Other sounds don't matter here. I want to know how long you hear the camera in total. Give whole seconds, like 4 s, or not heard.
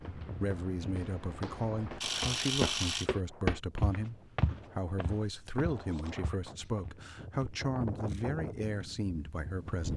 2 s.